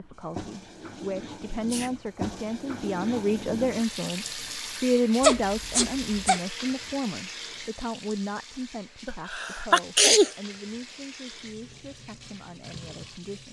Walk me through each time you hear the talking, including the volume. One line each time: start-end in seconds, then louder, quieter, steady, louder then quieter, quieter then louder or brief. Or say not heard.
0.0-13.4 louder then quieter.